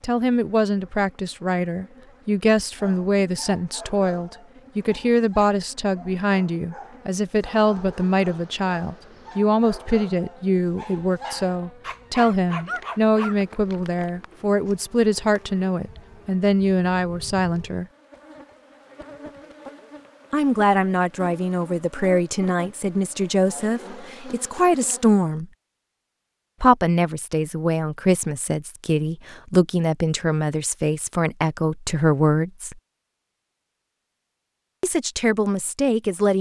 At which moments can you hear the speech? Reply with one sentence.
The speech can be heard from 0.0 to 17.9 s, from 20.3 to 25.4 s, from 26.6 to 32.8 s and from 34.8 to 36.3 s.